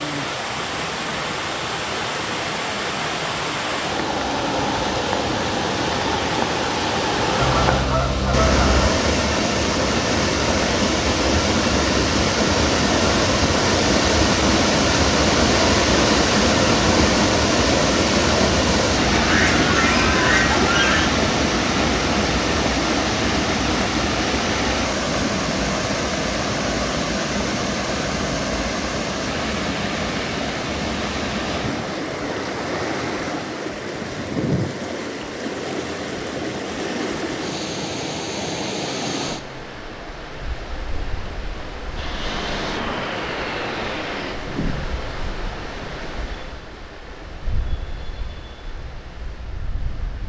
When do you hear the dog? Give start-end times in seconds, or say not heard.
not heard.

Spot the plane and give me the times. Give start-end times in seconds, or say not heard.
42.0-44.4.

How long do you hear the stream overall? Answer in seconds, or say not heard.
50 s.